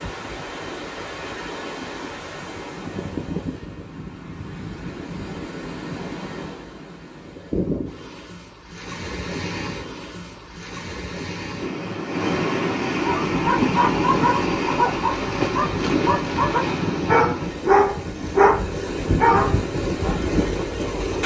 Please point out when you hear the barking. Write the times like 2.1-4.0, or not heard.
12.9-20.2.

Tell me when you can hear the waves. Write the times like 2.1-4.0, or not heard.
0.0-21.2.